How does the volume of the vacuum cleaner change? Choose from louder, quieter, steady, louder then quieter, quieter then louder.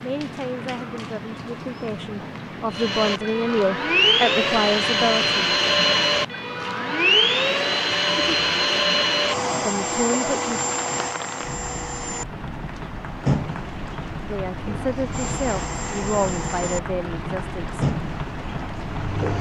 quieter.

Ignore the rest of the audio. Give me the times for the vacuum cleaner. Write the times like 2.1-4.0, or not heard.
2.7-19.3.